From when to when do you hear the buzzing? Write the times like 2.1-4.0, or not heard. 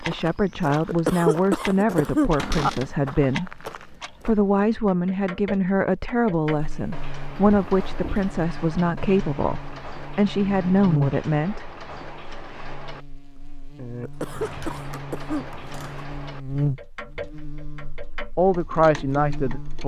6.5-19.8.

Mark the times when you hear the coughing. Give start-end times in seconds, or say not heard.
0.8-2.7, 14.0-15.4.